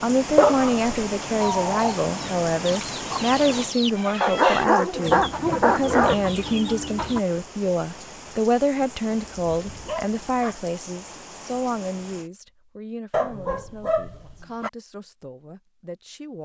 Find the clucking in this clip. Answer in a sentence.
The clucking can be heard from 1.4 to 7.2 s.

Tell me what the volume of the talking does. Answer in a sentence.
The volume of the talking goes down.